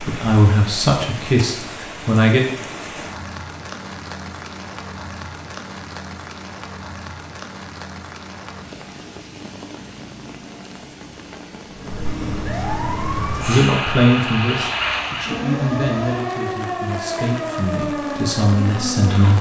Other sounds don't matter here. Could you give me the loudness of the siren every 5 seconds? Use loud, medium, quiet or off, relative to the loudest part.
off, off, loud, loud.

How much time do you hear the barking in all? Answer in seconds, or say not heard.
not heard.